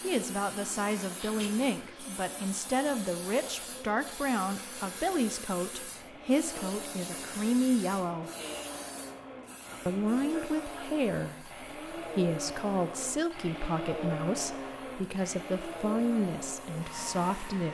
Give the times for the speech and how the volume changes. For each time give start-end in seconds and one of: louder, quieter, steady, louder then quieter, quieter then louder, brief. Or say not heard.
0.0-8.3 steady
9.8-17.6 steady.